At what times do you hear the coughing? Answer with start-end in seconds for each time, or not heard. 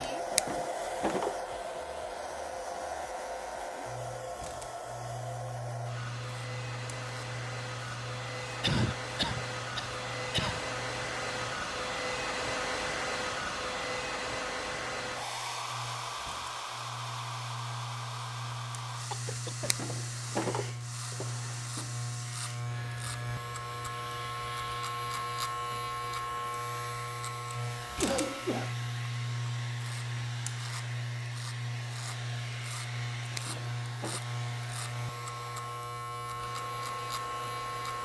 8.6-10.6, 19.1-20.3, 28.0-28.8.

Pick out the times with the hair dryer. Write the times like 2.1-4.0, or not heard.
0.0-38.0.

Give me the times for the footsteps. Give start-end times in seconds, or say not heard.
not heard.